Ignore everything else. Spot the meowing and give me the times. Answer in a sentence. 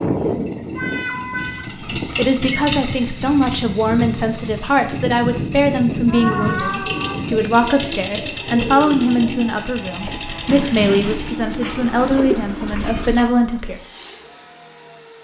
You can hear the meowing from 0.8 to 1.7 s, from 6.0 to 7.2 s and from 11.2 to 13.1 s.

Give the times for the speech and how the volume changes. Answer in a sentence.
You can hear the speech from 2.0 to 13.8 s, at a steady volume.